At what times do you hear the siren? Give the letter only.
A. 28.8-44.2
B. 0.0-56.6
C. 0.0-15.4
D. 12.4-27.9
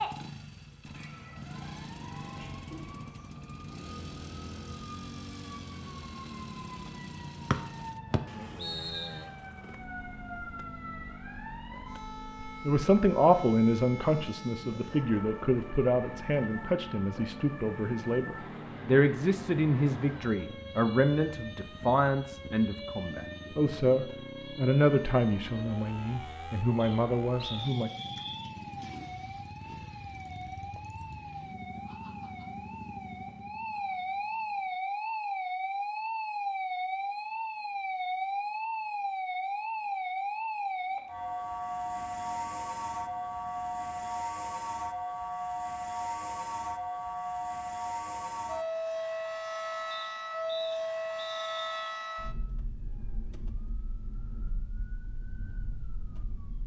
B.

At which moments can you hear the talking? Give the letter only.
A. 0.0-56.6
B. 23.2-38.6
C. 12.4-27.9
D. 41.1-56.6
C.